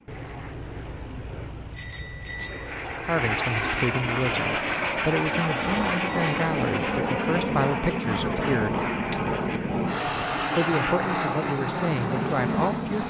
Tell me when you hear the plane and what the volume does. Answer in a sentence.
The plane can be heard from 0.0 to 13.0 s, getting louder.